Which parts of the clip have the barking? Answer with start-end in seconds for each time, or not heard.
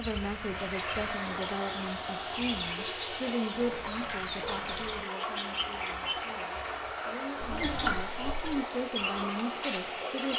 not heard.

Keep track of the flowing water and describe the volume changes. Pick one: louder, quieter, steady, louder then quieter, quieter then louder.
steady.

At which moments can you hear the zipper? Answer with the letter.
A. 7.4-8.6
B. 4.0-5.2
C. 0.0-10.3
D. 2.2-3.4
A.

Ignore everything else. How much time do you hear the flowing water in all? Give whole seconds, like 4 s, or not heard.
10 s.